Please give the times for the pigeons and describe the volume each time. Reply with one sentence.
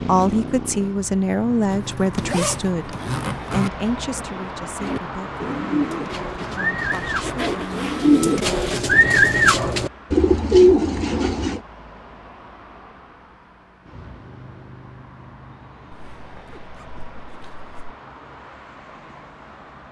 The pigeons can be heard from 4.8 to 11.6 s, getting louder.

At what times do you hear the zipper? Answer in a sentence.
You can hear the zipper from 1.7 to 3.7 s, from 6.9 to 8.8 s and from 16.1 to 17.9 s.